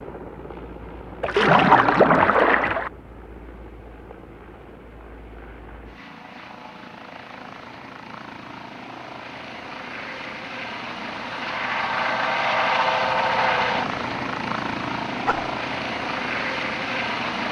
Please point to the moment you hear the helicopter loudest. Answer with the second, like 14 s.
13 s.